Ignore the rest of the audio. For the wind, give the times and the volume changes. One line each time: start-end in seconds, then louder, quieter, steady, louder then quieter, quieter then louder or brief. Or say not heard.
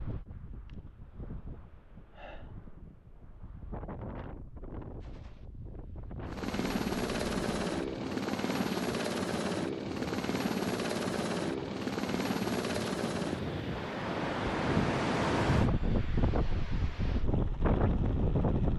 0.0-18.7 louder.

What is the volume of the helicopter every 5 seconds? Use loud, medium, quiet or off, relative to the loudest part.
off, loud, loud, quiet.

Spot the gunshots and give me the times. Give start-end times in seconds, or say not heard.
5.0-5.5.